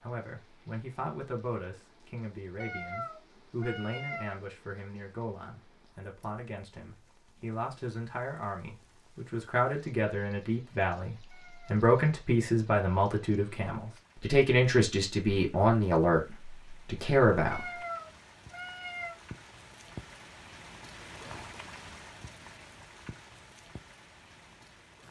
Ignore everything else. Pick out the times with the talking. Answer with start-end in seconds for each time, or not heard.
0.0-17.6.